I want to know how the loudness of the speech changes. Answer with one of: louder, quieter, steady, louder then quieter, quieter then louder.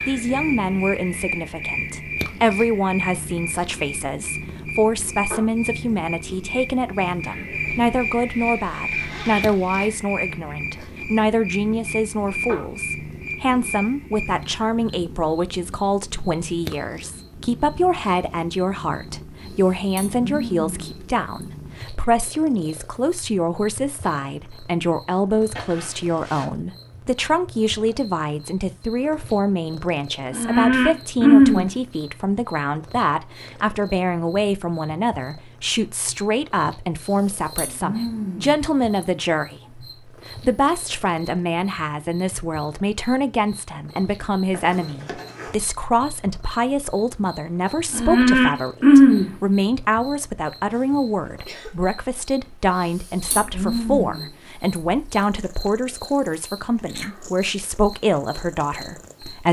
steady.